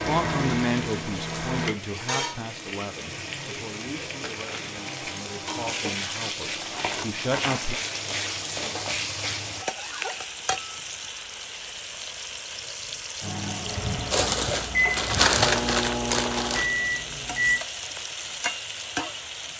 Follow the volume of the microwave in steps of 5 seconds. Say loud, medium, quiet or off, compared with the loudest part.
loud, off, loud, loud.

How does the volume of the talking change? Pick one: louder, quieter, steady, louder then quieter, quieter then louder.
quieter then louder.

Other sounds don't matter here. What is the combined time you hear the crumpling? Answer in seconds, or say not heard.
4 s.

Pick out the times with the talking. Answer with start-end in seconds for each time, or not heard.
0.1-7.8.